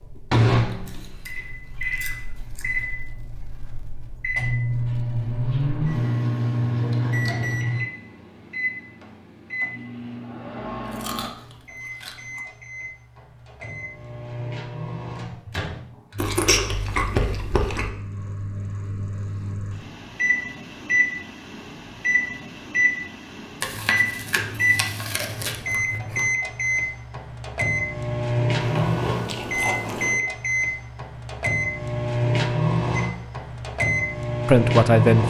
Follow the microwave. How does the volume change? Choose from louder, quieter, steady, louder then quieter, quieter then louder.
quieter then louder.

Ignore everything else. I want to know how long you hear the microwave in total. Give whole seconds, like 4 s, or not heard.
35 s.